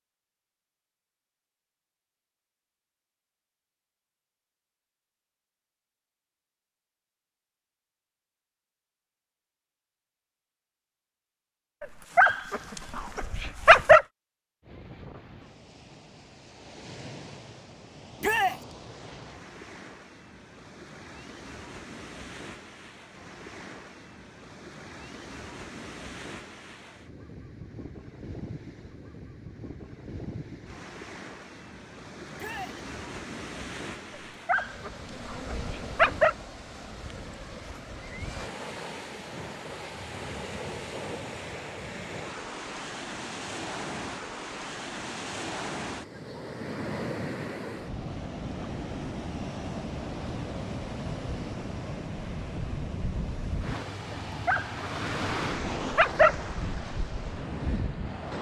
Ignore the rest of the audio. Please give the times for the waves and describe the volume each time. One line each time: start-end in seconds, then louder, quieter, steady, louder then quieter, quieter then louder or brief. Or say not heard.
14.6-58.3 louder.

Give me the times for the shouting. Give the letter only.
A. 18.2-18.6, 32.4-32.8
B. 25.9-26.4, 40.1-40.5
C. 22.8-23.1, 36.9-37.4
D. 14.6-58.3
A.